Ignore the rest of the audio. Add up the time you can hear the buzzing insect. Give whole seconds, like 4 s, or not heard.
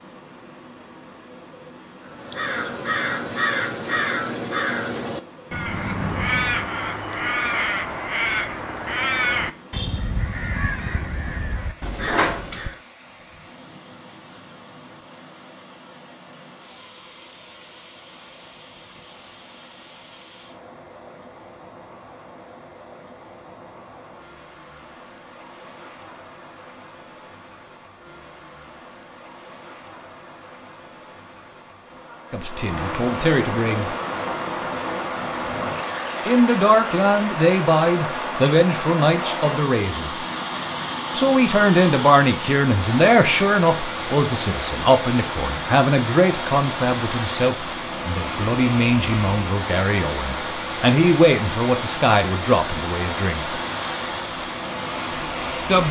not heard.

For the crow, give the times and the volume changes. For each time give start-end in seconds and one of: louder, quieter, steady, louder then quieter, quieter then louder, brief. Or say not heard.
2.0-12.8 steady.